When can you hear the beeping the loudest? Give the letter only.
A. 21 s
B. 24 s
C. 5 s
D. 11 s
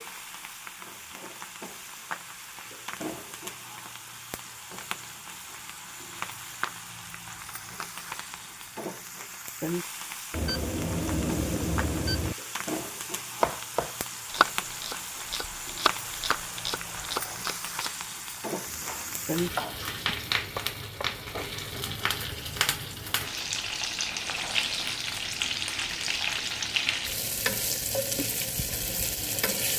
D.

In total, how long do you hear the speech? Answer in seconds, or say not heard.
not heard.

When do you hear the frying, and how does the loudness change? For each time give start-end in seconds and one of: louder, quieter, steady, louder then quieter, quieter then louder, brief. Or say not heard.
0.0-29.7 louder.